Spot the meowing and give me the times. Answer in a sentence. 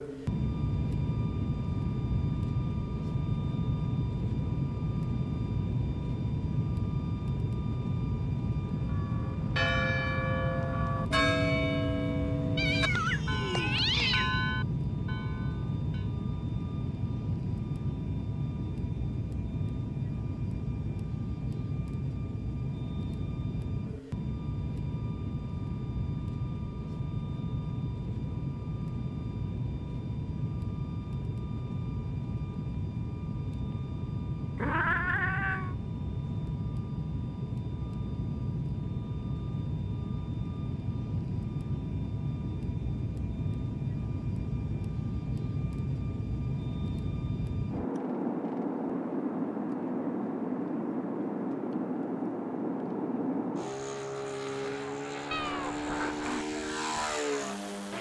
The meowing can be heard from 12.6 to 14.2 s, from 34.5 to 35.8 s and from 55.3 to 56.5 s.